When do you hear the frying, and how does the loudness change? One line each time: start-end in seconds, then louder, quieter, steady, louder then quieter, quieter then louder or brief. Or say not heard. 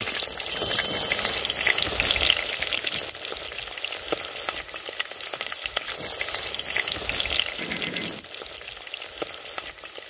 0.0-10.0 quieter.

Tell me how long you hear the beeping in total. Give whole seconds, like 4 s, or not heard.
2 s.